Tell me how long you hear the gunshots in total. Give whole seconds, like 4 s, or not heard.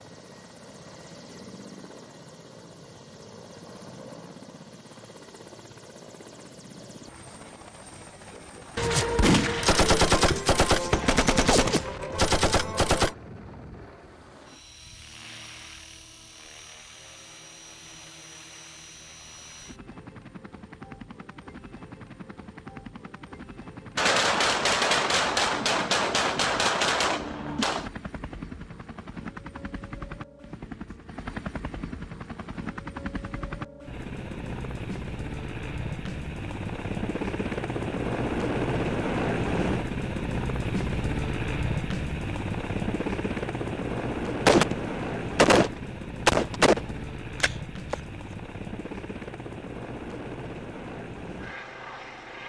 12 s.